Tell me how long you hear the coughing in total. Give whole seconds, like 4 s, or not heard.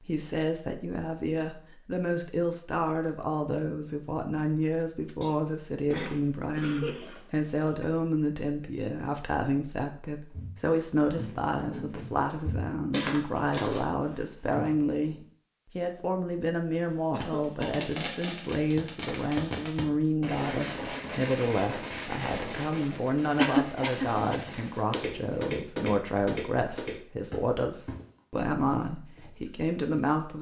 5 s.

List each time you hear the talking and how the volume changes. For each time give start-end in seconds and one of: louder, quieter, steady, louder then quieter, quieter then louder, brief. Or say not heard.
0.0-30.3 steady.